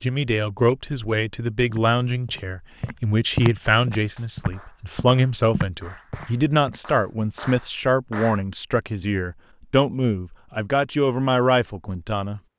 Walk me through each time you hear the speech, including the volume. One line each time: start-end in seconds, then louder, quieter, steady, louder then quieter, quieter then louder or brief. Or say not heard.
0.0-12.4 steady.